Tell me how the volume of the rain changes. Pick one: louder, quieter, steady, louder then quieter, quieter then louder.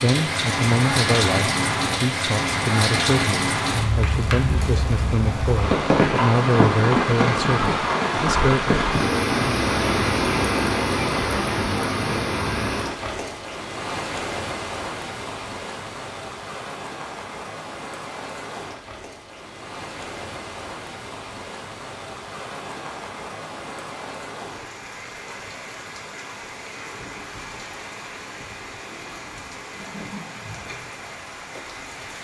quieter.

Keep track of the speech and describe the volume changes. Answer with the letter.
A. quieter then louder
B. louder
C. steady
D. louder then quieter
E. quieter
C.